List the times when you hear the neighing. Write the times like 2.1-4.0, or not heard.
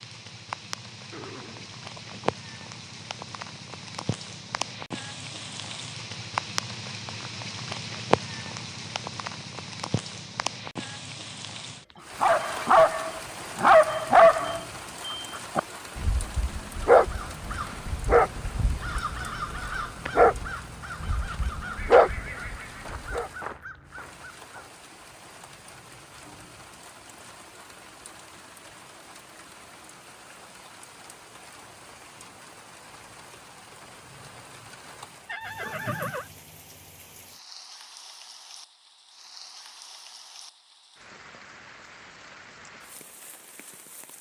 1.1-2.4, 21.8-23.0, 35.2-36.3.